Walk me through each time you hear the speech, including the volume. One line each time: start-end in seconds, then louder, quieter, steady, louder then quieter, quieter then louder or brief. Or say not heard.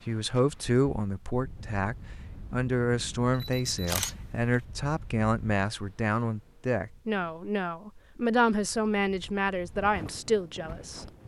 0.1-11.1 steady.